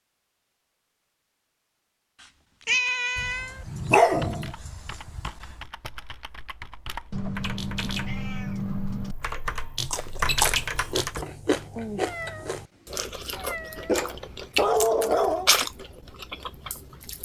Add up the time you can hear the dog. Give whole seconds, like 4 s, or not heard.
4 s.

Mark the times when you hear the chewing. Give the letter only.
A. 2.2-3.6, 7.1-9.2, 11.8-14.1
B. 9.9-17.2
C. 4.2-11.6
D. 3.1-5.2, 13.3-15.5
B.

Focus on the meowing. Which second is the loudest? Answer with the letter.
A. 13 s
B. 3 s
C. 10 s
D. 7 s
B.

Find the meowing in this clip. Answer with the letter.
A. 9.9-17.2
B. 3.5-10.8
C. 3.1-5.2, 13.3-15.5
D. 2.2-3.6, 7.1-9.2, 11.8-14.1
D.